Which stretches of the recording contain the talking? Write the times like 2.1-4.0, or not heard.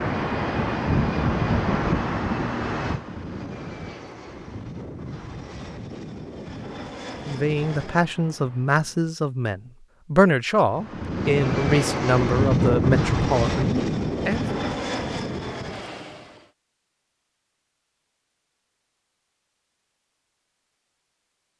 7.2-14.4.